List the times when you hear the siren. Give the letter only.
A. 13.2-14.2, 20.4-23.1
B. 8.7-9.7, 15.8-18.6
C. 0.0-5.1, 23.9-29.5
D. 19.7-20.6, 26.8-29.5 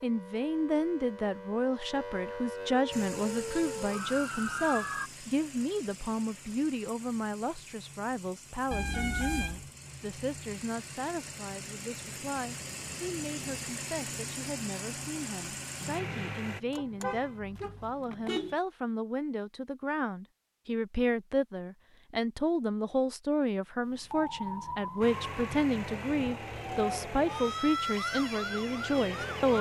C.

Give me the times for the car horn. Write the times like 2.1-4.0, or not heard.
8.7-9.7, 15.8-18.6.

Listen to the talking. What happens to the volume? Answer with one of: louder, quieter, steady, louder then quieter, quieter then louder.
quieter then louder.